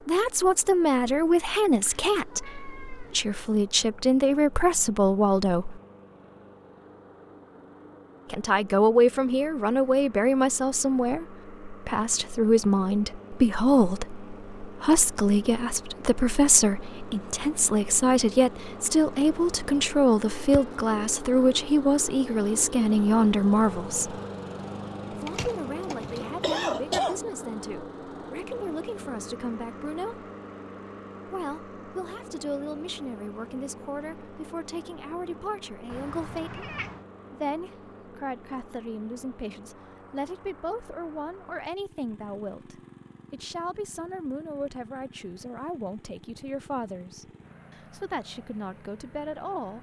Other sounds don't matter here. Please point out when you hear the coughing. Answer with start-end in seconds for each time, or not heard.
25.2-27.2.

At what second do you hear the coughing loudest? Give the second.
27 s.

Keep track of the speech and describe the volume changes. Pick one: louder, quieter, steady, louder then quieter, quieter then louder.
quieter.